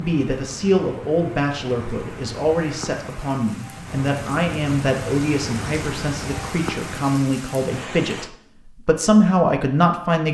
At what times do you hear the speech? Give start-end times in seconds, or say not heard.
0.0-10.2.